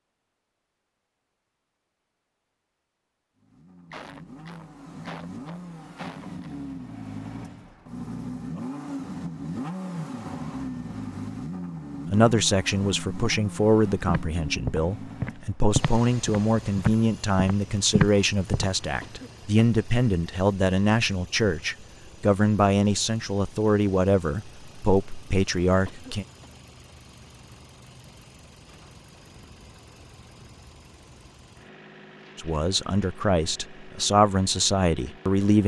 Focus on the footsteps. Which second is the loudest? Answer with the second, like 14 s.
18 s.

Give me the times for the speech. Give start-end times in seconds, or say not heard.
12.1-26.2, 32.4-35.6.